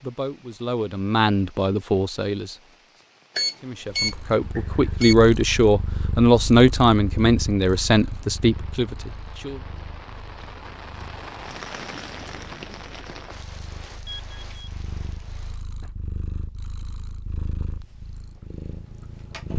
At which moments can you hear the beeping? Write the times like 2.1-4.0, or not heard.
3.4-5.2, 14.0-14.7.